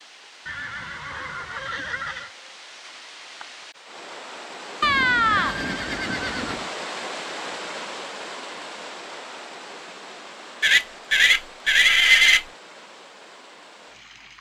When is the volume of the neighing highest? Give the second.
12 s.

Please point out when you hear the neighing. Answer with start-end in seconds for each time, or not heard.
0.5-2.3, 4.8-6.7, 10.6-12.4.